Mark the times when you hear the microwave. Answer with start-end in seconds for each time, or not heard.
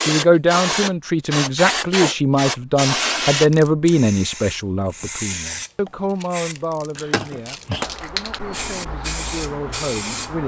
not heard.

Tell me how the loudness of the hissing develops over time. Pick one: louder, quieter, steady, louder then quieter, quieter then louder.
quieter.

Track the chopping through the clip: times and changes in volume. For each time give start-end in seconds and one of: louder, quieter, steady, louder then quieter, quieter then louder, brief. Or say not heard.
not heard.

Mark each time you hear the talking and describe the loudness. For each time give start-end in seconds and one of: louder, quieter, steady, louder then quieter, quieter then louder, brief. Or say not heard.
0.0-10.4 quieter.